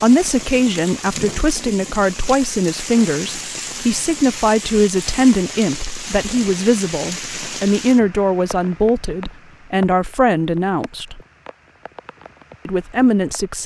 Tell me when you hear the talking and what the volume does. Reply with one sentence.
The talking can be heard from 0.0 to 11.2 s, at a steady volume; and briefly from 12.7 to 13.6 s.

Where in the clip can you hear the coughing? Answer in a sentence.
You can't hear the coughing here.